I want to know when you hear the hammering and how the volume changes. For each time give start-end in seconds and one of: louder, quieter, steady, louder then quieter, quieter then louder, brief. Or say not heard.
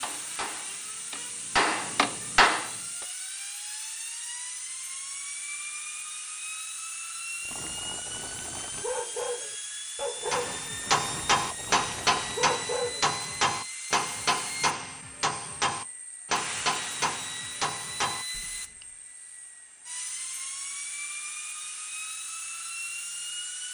0.0-2.7 brief
10.3-18.9 quieter.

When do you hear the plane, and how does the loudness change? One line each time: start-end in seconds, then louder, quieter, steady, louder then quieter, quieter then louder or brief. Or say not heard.
0.0-23.6 steady.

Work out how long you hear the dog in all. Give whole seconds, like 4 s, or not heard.
6 s.